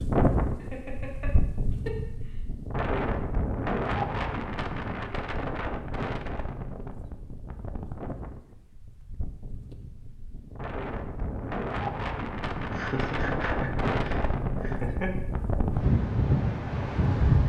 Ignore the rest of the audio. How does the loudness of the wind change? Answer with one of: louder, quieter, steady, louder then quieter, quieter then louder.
quieter then louder.